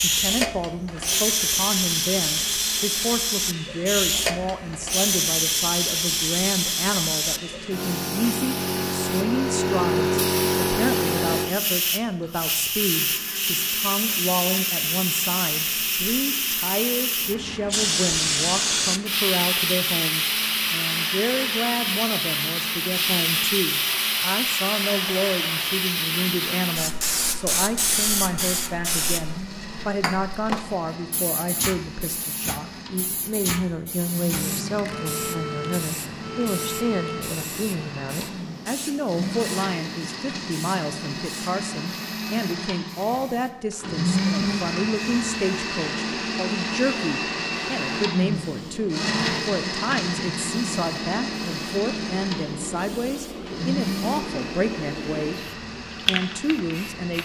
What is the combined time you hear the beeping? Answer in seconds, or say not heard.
2 s.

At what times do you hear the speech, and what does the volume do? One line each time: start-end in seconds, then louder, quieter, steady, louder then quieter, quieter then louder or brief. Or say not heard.
0.0-55.4 steady
56.0-57.2 brief.